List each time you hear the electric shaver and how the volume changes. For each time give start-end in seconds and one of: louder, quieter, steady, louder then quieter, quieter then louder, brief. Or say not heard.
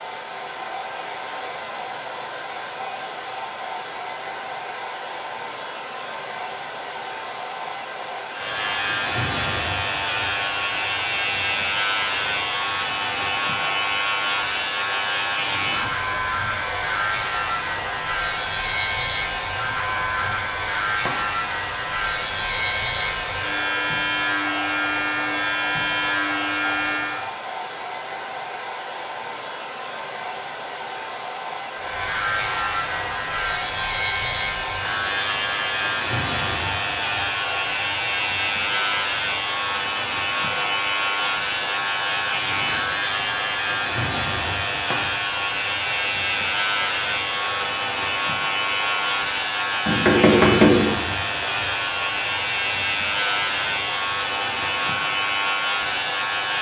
8.3-27.2 steady
31.7-56.5 steady.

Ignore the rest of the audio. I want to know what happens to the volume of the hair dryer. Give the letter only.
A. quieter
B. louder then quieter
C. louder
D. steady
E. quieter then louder
D.